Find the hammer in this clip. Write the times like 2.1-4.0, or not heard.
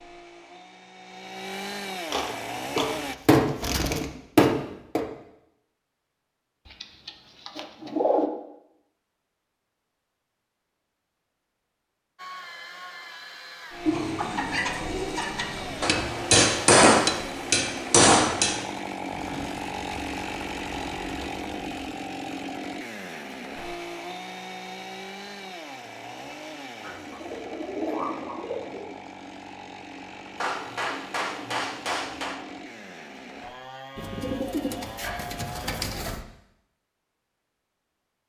2.8-5.0, 15.8-18.6, 30.4-32.4.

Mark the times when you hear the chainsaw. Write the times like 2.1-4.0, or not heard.
0.0-3.1, 12.2-35.9.